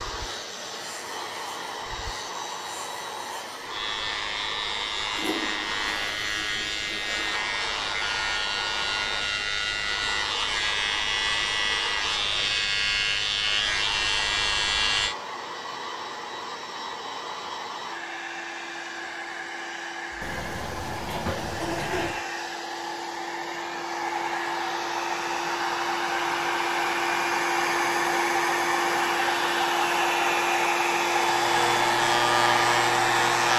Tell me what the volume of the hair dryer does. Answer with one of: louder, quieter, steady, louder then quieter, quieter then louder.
louder.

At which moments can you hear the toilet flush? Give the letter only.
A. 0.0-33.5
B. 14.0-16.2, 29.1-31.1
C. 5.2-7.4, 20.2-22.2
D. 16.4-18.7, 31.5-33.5
C.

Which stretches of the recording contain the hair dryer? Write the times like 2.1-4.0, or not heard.
0.0-33.5.